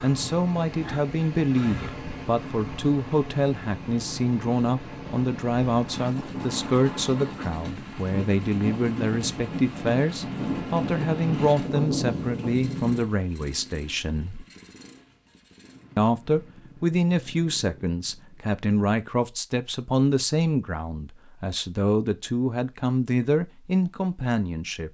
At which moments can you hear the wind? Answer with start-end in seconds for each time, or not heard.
0.0-13.0.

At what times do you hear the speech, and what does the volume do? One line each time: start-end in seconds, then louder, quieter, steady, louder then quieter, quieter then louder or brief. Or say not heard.
0.0-14.4 steady
15.9-24.8 steady.